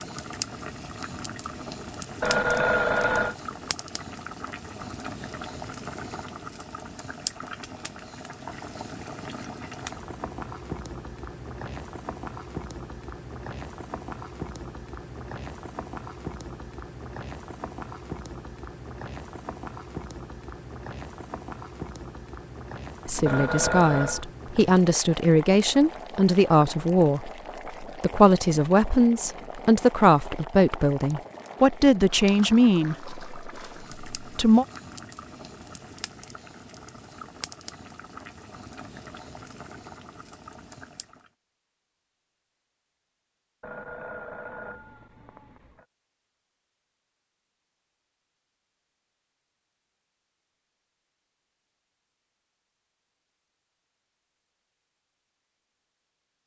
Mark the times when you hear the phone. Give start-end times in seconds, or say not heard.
2.2-3.4, 23.2-24.2, 43.6-45.9.